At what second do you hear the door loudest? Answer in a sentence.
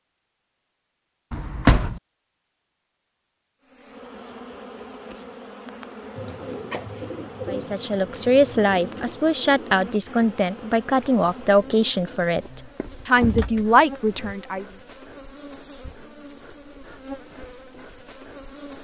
The loudest moment of the door is at 2 seconds.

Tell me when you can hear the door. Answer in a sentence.
You can hear the door from 1.3 to 2.0 s and from 12.8 to 14.3 s.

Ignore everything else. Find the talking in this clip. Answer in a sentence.
The talking can be heard from 7.5 to 14.7 s.